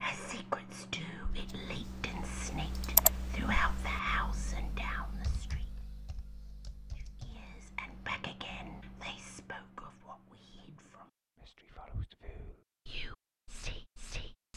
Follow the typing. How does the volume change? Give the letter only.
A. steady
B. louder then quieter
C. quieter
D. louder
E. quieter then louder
C.